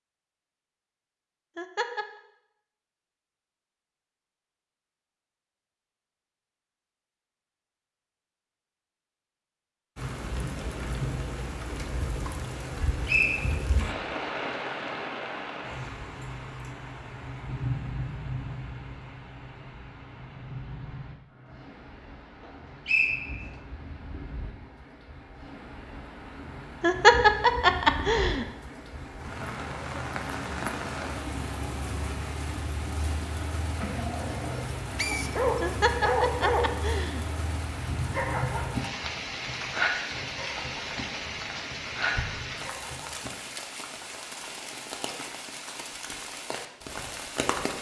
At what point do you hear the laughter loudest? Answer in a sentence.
The loudest moment of the laughter is at 27 seconds.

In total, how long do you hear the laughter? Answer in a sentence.
The laughter can be heard for 4 seconds in total.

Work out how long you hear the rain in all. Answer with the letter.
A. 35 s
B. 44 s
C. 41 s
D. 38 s
D.